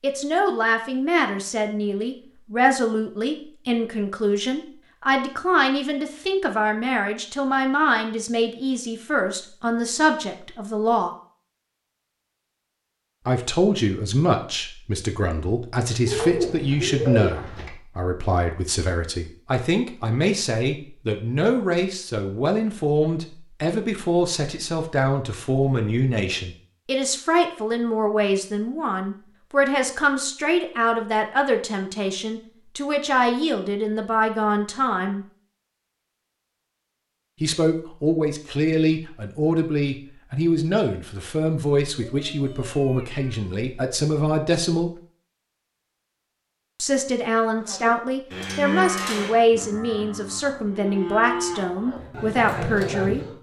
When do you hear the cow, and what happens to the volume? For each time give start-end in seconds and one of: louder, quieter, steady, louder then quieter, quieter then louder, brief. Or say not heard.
47.5-53.3 quieter then louder.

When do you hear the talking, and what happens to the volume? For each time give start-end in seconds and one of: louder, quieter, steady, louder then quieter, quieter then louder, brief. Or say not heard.
0.0-11.1 steady
13.2-35.2 steady
37.4-45.0 steady
46.8-53.2 steady.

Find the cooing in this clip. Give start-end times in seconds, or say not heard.
16.1-17.7.